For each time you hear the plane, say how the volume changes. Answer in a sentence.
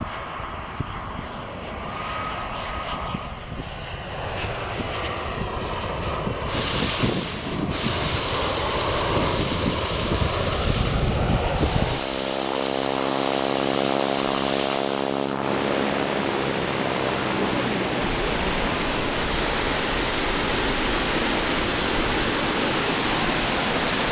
You can hear the plane from 0.0 to 23.9 s, getting louder then quieter.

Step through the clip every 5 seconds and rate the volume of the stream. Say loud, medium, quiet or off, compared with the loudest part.
off, medium, medium, loud, loud.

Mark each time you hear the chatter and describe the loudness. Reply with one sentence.
You can't hear the chatter here.